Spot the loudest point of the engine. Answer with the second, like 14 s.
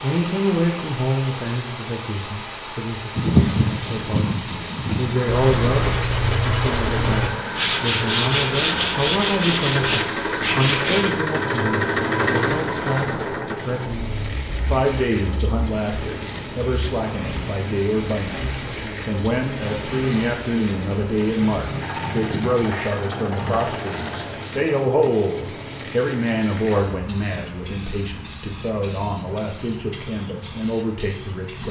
12 s.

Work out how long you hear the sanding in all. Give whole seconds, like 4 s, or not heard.
8 s.